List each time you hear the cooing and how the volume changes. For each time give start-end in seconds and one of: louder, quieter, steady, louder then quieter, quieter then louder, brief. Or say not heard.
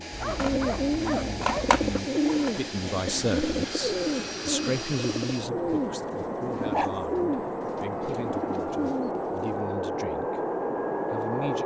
0.3-9.7 quieter.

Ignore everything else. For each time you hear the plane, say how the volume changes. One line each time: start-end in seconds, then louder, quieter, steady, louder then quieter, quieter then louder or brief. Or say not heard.
0.0-11.6 louder.